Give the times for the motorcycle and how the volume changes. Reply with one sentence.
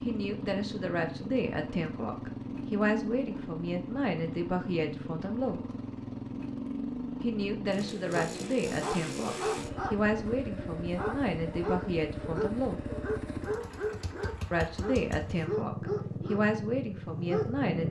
You can hear the motorcycle from 0.0 to 17.8 s, at a steady volume.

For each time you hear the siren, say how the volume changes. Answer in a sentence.
The siren can't be heard in this clip.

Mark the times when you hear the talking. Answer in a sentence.
You can hear the talking from 0.0 to 5.6 s, from 7.2 to 12.8 s and from 14.5 to 17.8 s.